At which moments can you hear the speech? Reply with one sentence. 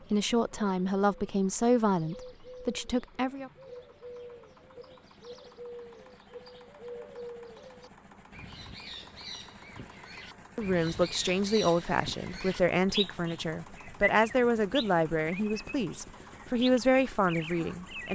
The speech can be heard from 0.1 to 3.5 s and from 10.6 to 18.1 s.